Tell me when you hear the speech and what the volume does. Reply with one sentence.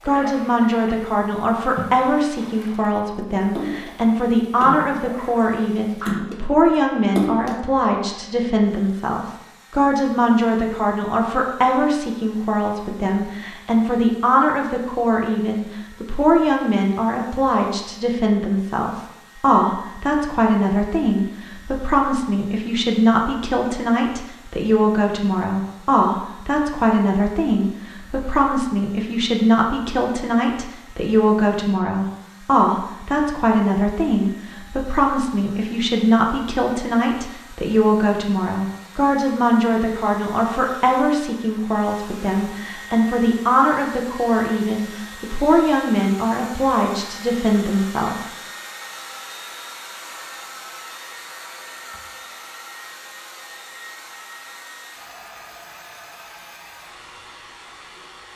The speech can be heard from 0.1 to 48.2 s, at a steady volume.